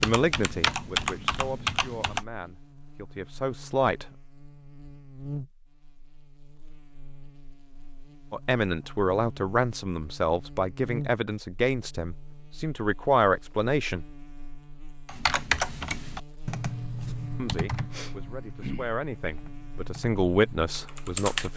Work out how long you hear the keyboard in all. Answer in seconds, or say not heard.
9 s.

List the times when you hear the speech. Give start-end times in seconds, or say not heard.
0.0-4.0, 8.3-14.1, 17.4-21.5.